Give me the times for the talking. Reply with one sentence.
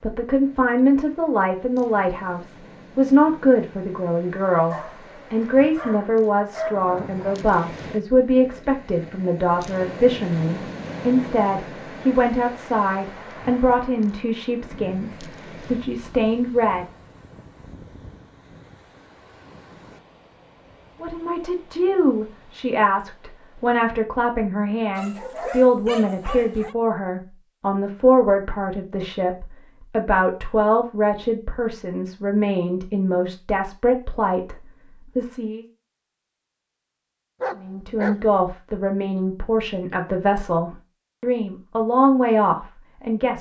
You can hear the talking from 0.0 to 16.9 s, from 21.0 to 35.6 s and from 37.5 to 43.3 s.